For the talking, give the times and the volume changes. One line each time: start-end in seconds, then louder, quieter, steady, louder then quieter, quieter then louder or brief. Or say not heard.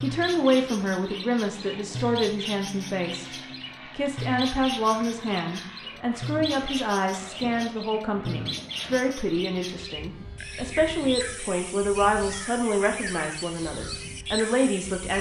0.0-15.1 steady.